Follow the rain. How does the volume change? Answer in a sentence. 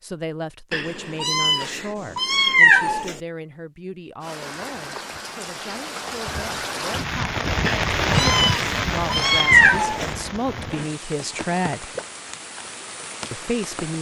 The loudness of the rain goes up, then down.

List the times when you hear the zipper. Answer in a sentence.
The zipper can't be heard in this clip.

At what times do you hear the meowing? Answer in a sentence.
You can hear the meowing from 0.7 to 3.2 s and from 7.7 to 10.1 s.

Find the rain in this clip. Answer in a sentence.
You can hear the rain from 4.2 to 13.9 s.